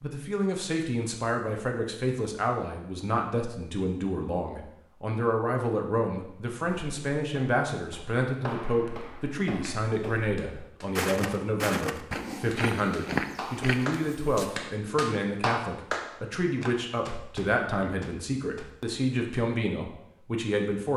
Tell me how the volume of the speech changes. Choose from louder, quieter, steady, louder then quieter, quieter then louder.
steady.